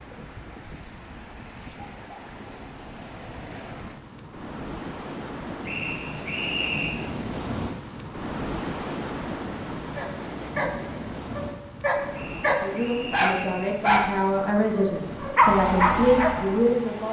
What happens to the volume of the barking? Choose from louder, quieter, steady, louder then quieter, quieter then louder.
louder.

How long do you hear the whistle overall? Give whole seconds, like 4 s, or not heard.
3 s.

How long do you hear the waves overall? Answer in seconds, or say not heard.
17 s.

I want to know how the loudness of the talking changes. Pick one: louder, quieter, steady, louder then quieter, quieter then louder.
louder.